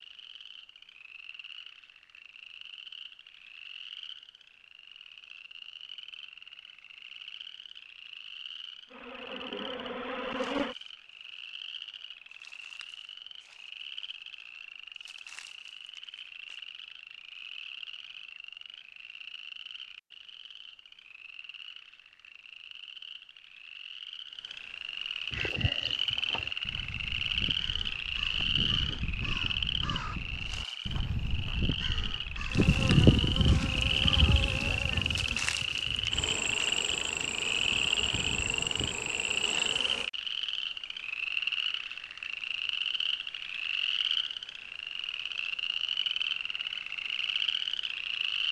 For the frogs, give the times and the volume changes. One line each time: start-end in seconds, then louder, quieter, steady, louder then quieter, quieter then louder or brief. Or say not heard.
0.0-48.4 louder.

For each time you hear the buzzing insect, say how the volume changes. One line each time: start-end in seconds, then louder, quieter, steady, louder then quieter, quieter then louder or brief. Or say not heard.
8.8-10.8 brief
32.5-40.1 quieter.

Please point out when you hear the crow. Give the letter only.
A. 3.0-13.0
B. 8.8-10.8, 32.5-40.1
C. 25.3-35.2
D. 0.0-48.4
C.